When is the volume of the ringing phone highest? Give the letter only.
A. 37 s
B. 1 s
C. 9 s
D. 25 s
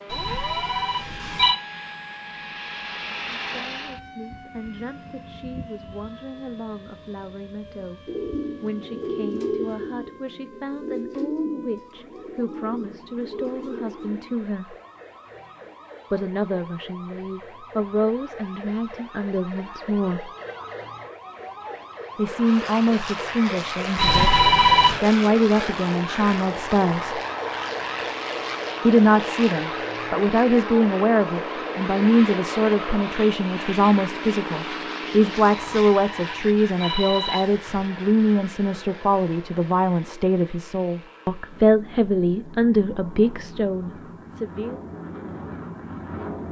D.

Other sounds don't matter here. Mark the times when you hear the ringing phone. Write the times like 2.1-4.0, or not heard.
0.1-1.6, 23.9-25.0, 35.5-37.9.